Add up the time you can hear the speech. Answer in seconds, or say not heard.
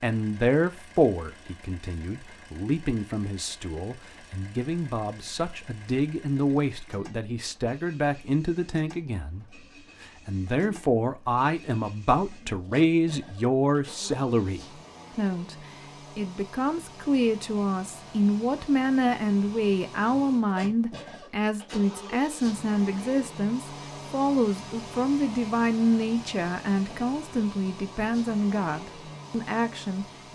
30 s.